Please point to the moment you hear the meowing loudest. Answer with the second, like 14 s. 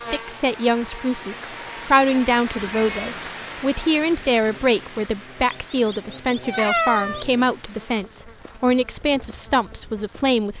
7 s.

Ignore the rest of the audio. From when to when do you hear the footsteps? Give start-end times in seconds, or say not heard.
not heard.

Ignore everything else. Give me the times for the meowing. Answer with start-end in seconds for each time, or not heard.
2.6-3.1, 5.5-7.2.